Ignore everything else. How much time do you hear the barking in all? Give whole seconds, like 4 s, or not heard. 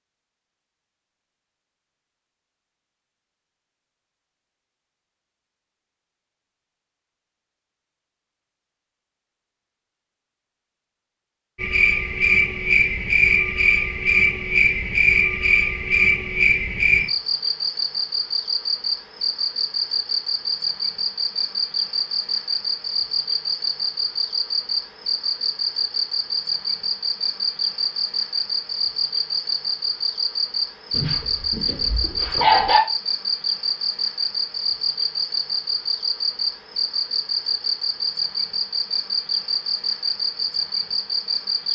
2 s.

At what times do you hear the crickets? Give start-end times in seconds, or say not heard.
11.6-41.7.